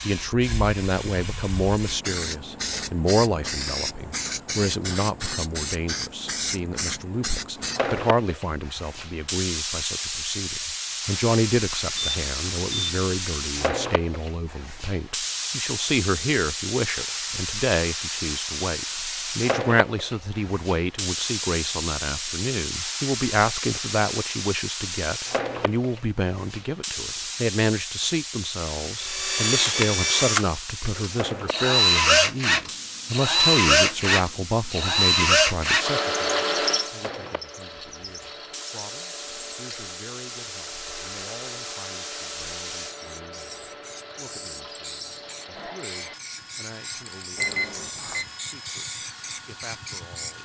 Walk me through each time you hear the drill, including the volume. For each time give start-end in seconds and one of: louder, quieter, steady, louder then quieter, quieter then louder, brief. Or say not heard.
28.9-50.4 quieter.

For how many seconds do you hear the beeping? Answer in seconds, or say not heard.
2 s.